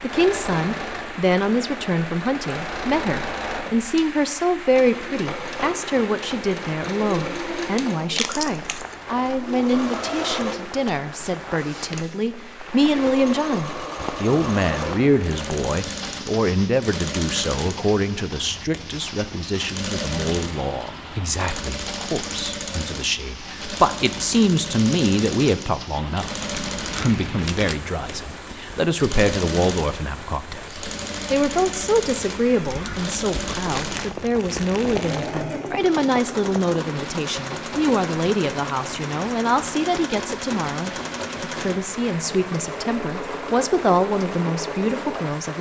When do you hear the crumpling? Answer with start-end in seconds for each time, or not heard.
8.1-8.9, 26.5-27.8, 32.6-35.4.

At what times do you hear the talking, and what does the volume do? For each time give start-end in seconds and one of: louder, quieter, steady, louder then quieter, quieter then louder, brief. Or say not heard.
0.0-45.5 steady.